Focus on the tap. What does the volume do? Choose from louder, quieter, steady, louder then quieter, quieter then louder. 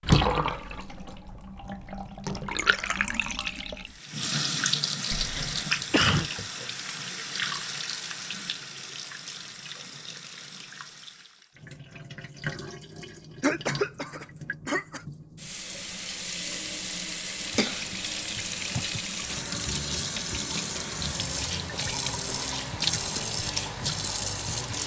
quieter then louder.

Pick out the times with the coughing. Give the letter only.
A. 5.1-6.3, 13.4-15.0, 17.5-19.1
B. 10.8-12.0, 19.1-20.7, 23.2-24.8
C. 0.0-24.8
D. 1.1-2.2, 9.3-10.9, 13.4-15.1
A.